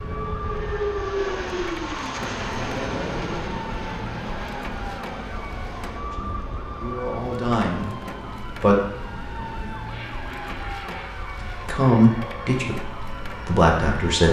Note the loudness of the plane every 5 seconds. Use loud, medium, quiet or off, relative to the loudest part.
loud, medium, medium.